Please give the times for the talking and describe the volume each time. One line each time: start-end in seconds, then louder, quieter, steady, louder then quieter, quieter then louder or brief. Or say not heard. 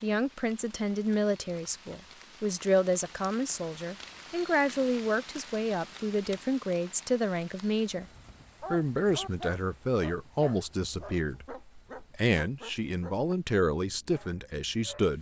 0.0-8.1 steady
8.7-15.1 steady.